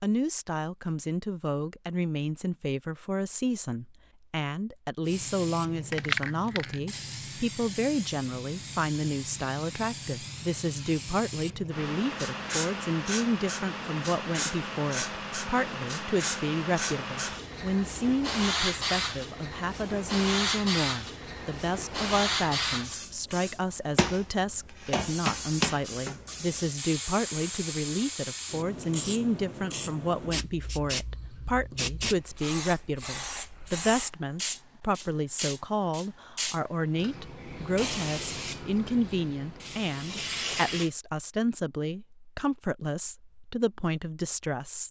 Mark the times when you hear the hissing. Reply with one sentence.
You can hear the hissing from 5.0 to 40.9 s.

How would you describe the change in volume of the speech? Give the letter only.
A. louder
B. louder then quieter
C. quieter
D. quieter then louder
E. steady
E.